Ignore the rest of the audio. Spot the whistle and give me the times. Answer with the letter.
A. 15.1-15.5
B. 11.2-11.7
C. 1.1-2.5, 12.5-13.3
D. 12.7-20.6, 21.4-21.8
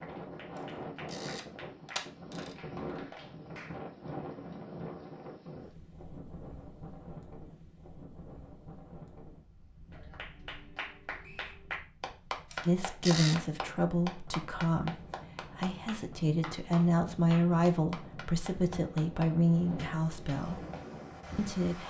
B.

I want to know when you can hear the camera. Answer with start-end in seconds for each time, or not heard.
1.1-2.5, 12.5-13.3.